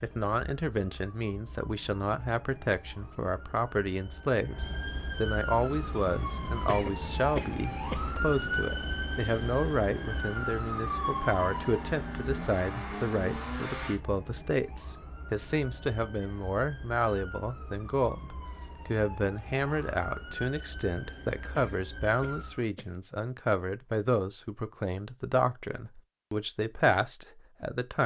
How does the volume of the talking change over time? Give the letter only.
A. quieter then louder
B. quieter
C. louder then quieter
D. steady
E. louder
D.